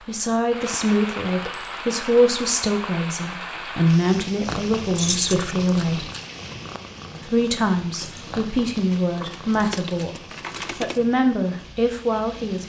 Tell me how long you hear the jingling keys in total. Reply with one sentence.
You can hear the jingling keys for 3 seconds altogether.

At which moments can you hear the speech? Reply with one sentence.
You can hear the speech from 0.1 to 6.1 s and from 7.2 to 12.6 s.